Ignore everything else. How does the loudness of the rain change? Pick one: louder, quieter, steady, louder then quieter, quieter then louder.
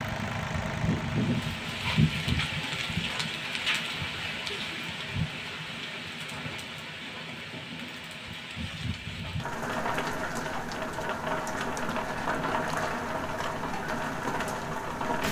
quieter then louder.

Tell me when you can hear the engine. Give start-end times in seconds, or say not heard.
0.0-2.0.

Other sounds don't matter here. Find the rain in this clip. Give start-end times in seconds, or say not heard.
0.0-15.2.